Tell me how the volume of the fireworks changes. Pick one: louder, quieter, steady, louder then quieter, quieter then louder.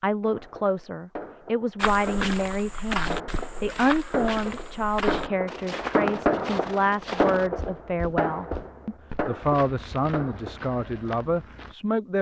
louder then quieter.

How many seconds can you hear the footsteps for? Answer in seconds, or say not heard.
10 s.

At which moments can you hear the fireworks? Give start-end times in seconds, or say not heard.
0.2-10.7.